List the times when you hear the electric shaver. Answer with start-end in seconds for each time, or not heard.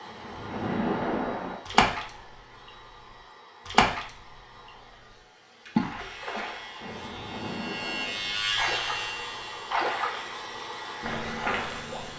6.0-12.1.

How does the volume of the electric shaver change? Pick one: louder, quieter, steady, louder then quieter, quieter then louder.
louder then quieter.